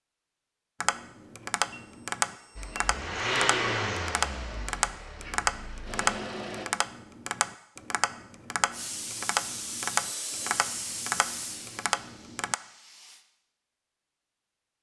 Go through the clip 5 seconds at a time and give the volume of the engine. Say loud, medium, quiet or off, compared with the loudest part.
loud, medium, off.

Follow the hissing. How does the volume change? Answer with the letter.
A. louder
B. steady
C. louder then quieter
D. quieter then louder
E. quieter
E.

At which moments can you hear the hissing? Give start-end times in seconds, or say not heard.
8.7-13.2.